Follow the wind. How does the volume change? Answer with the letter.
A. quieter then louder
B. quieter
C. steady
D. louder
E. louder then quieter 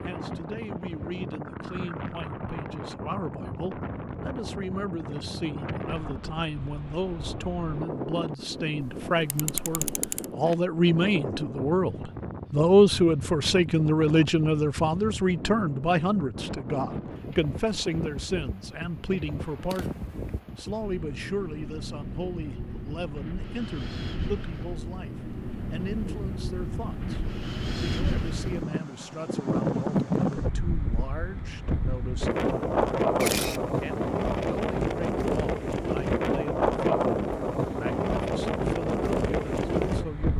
D.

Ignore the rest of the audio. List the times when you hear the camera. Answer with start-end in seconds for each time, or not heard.
8.8-10.2, 19.6-20.4, 33.1-33.6.